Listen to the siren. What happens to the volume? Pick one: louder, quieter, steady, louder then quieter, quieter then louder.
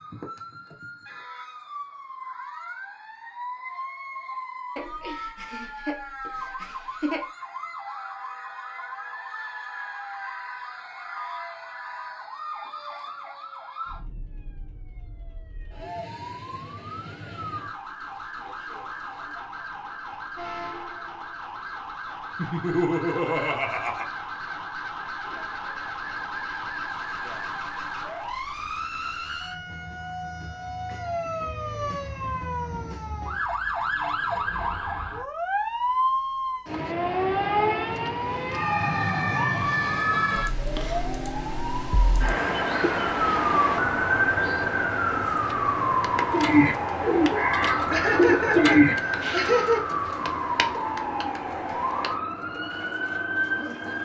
louder.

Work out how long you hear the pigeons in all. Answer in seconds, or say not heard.
8 s.